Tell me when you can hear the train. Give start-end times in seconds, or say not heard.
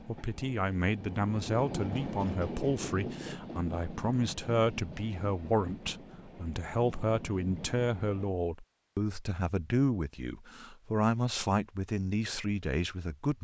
0.0-8.3.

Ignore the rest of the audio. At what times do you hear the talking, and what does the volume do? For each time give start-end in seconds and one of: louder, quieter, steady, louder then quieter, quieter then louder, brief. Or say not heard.
0.1-13.3 steady.